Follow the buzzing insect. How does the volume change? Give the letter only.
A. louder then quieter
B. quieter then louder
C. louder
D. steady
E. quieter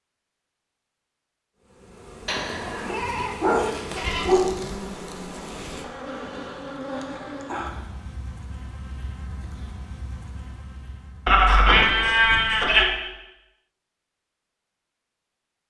E.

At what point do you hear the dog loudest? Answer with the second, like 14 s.
4 s.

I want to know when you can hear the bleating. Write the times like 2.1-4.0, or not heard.
2.2-4.2, 11.2-12.8.